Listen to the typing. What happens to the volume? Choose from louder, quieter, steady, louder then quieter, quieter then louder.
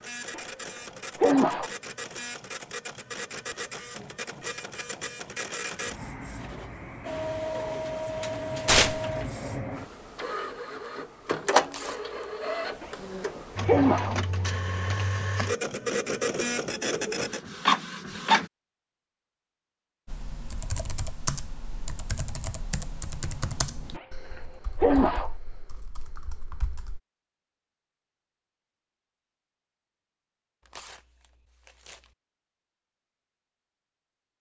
quieter.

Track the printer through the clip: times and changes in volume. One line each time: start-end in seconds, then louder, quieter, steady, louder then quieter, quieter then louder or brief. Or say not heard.
0.0-18.5 louder.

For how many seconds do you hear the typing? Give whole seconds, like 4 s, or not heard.
7 s.